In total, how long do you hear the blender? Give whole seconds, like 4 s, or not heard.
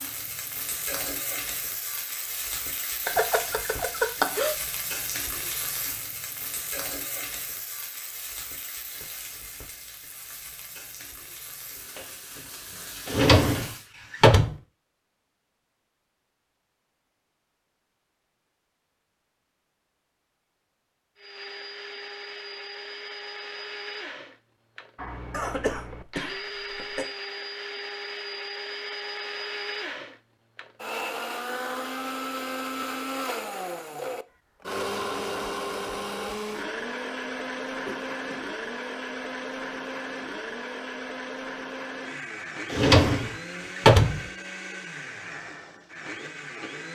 26 s.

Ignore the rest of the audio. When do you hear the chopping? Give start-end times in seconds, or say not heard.
not heard.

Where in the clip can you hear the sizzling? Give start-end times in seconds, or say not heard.
0.0-13.9.